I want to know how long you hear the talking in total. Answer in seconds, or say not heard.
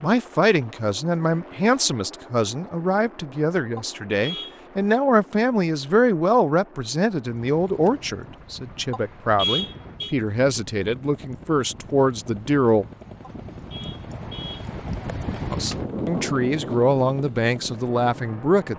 16 s.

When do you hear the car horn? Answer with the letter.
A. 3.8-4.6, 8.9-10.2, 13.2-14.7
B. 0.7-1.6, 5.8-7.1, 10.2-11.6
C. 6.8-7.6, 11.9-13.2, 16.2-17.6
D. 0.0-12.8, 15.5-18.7
A.